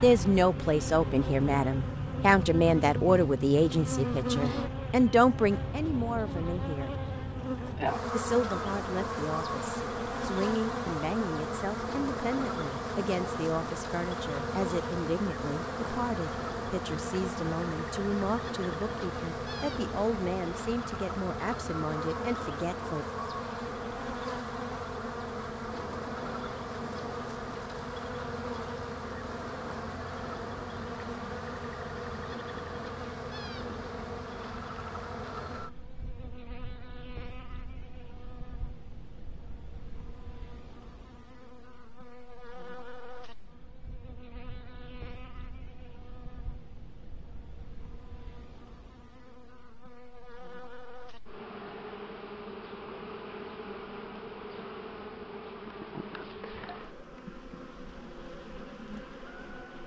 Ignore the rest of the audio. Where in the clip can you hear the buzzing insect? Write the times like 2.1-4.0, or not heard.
0.0-59.8.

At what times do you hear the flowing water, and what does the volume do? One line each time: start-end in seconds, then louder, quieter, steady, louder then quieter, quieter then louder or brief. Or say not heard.
not heard.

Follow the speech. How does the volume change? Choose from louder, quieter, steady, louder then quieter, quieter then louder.
quieter.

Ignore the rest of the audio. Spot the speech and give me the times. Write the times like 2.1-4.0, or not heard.
0.0-7.0, 8.1-23.1.